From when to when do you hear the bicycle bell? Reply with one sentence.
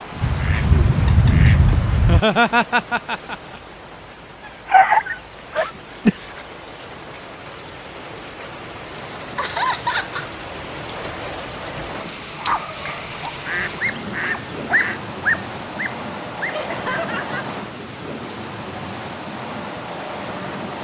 The bicycle bell can't be heard in this clip.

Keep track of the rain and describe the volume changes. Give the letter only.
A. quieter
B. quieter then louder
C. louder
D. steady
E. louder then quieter
C.